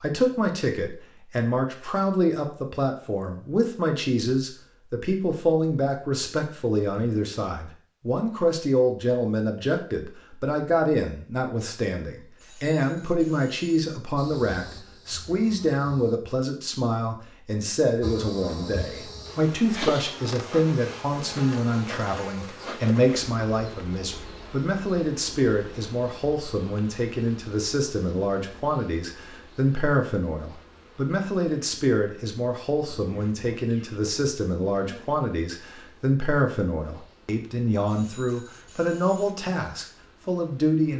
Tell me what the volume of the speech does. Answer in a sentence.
The volume of the speech stays about the same.